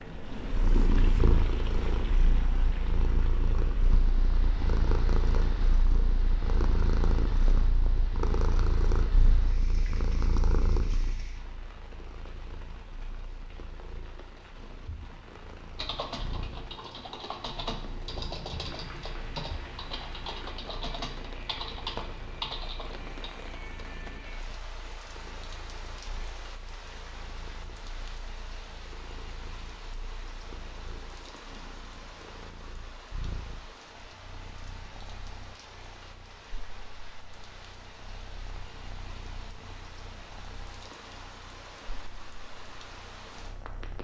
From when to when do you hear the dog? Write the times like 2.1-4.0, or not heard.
not heard.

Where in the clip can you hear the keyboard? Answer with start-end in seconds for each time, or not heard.
15.8-23.3.